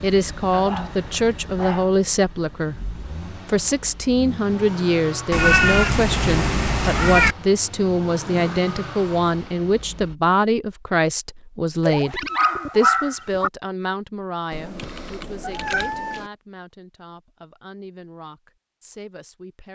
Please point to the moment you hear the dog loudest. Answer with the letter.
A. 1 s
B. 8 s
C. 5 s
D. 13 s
D.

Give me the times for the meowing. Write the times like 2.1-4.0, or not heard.
5.3-7.3, 14.5-16.3.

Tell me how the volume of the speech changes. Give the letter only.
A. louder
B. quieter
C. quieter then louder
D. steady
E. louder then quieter
B.